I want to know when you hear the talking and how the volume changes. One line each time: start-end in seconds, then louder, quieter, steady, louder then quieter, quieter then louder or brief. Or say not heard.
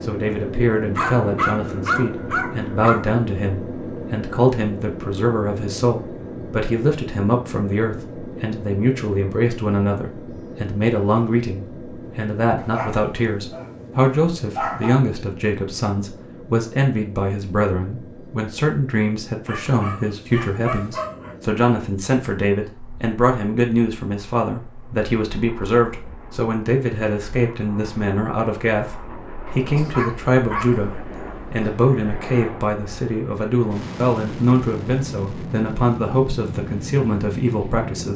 0.0-38.1 steady.